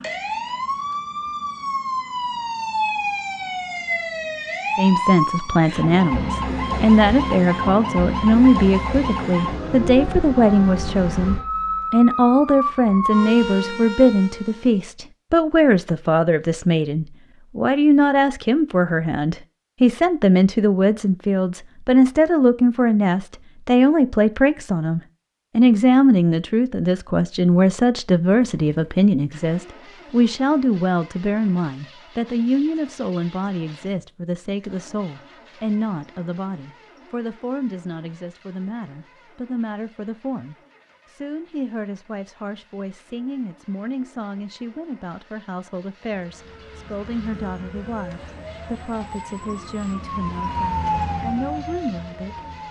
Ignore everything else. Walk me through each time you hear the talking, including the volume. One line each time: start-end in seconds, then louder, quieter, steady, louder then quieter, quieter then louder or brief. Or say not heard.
4.8-52.4 quieter.